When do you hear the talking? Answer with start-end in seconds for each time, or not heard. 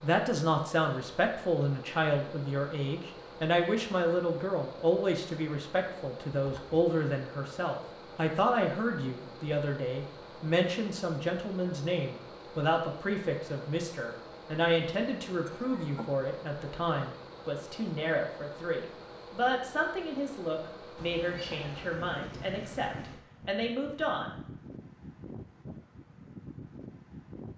0.0-24.4.